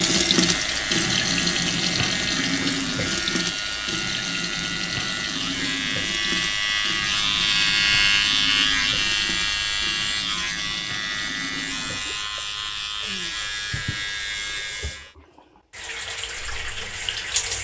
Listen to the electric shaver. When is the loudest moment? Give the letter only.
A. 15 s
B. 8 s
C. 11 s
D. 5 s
B.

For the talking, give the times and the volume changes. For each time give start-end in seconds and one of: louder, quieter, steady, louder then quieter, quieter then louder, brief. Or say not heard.
not heard.